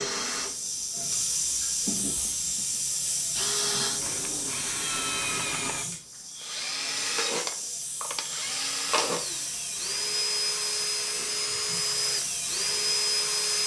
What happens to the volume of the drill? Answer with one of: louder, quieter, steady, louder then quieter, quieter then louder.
louder.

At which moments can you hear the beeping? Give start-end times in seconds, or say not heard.
not heard.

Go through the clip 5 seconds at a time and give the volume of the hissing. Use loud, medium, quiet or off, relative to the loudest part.
loud, medium, loud.